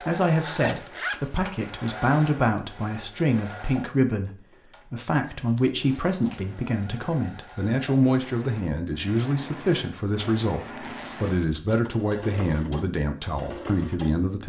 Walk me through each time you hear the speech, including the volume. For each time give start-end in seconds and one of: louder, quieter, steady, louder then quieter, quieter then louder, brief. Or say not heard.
0.0-14.4 steady.